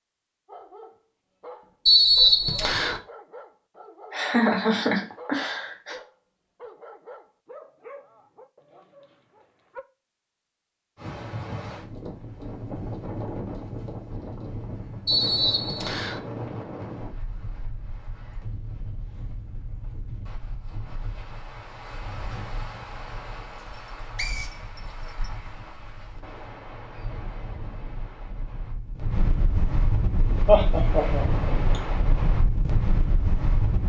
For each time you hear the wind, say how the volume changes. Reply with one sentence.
The wind can be heard from 10.9 to 33.8 s, getting quieter then louder.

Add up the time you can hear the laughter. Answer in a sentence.
The laughter can be heard for 3 seconds in total.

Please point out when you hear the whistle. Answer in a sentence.
You can hear the whistle from 1.9 to 3.0 s, from 15.1 to 16.2 s and from 23.6 to 25.3 s.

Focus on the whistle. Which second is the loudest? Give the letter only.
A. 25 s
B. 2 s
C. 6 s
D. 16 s
B.